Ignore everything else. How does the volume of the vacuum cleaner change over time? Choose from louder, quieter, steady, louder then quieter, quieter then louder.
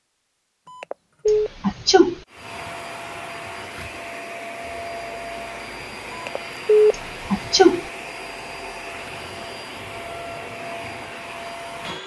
steady.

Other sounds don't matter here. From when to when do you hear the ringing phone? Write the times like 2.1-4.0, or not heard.
0.7-1.5, 6.1-7.0.